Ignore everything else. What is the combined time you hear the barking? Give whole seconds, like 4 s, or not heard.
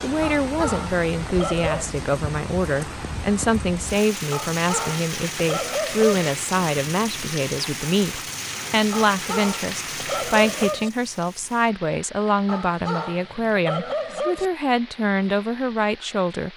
8 s.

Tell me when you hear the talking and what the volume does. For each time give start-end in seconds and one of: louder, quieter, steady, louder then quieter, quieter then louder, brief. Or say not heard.
0.0-16.5 steady.